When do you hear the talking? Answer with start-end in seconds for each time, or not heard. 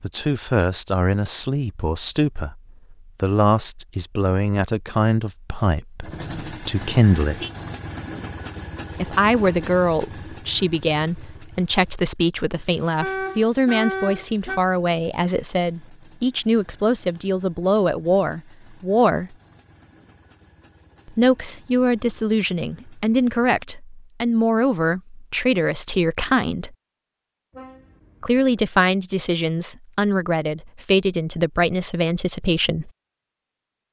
0.0-7.5, 8.9-19.4, 21.1-26.8, 28.2-32.9.